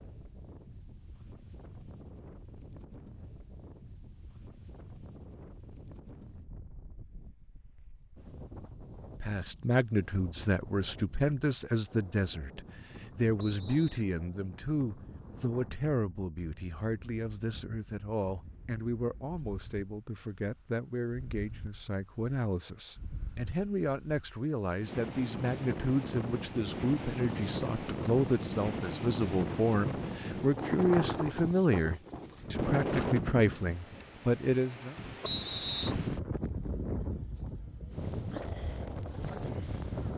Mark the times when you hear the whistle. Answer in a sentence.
The whistle can be heard from 13.3 to 14.0 s and from 35.2 to 36.0 s.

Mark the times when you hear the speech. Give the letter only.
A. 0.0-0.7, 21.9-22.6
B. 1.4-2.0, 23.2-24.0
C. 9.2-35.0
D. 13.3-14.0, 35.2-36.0
C.